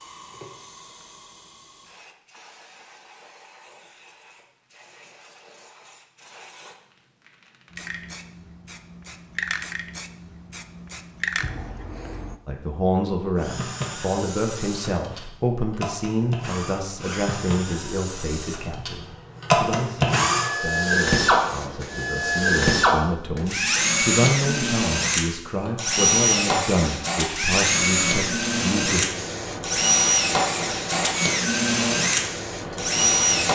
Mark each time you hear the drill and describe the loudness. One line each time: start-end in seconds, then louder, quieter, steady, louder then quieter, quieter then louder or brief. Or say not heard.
13.3-33.5 louder.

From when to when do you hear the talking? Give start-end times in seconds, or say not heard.
12.4-29.1.